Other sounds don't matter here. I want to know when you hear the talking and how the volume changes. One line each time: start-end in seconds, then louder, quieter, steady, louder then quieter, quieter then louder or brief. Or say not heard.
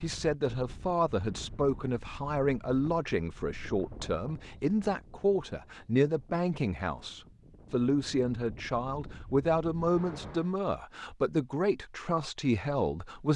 0.0-13.3 steady.